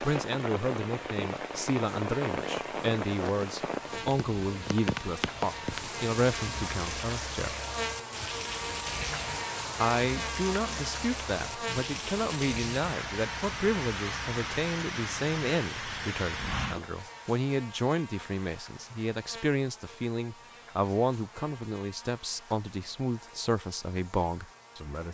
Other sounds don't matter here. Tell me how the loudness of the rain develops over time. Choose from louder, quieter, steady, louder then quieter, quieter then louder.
steady.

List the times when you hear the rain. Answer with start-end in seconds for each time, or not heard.
0.0-16.9.